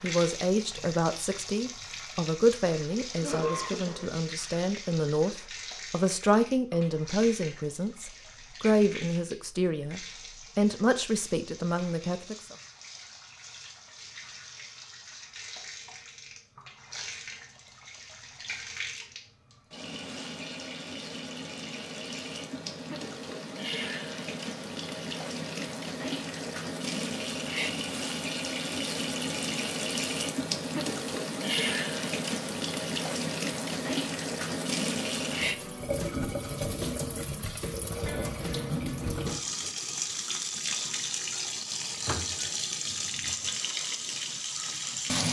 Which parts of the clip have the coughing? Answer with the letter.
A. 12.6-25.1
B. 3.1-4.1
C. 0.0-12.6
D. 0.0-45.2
B.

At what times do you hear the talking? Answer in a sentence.
You can hear the talking from 0.0 to 12.6 s.